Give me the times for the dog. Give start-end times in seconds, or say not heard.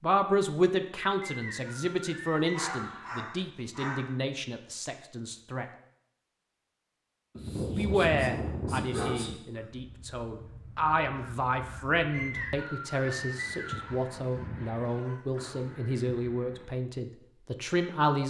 2.3-4.1, 7.3-9.3, 13.8-15.7.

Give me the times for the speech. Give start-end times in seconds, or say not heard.
0.0-5.7, 7.8-18.2.